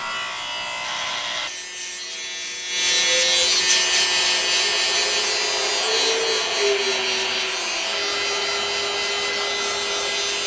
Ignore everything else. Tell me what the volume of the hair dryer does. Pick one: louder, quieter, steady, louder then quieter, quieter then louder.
louder.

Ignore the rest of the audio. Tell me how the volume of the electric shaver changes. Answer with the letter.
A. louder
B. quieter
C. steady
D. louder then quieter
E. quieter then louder
D.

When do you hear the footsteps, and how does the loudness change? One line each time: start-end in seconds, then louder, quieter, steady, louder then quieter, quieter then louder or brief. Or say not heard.
not heard.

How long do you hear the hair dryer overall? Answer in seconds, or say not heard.
7 s.